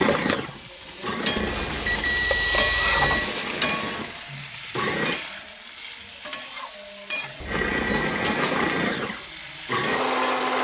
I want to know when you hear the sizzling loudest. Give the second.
3 s.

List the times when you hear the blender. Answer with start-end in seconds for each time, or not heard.
0.0-5.2, 7.5-10.5.